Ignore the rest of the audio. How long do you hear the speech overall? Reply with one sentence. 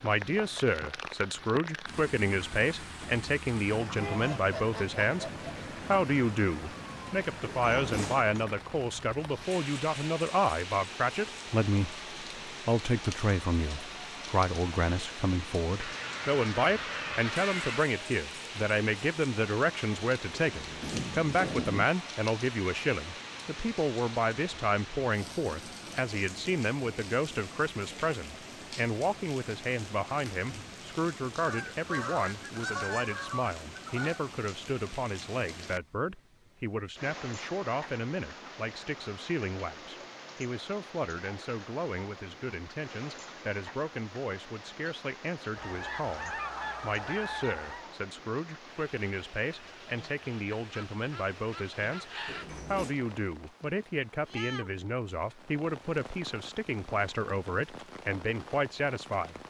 You can hear the speech for 59 seconds altogether.